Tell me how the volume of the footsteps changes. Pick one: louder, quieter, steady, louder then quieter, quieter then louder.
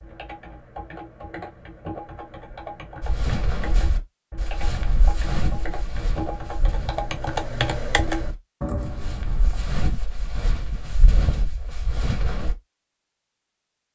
quieter then louder.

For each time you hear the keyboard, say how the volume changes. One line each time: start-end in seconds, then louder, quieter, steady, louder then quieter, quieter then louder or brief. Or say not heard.
0.0-9.7 louder.